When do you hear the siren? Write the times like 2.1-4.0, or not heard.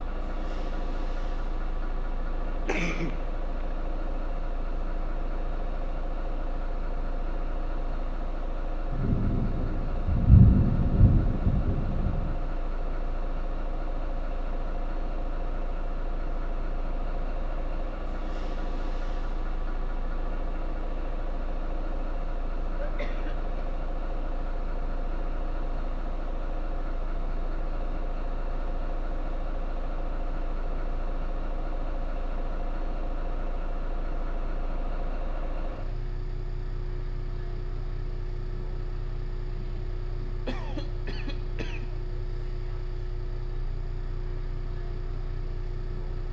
not heard.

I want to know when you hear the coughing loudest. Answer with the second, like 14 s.
3 s.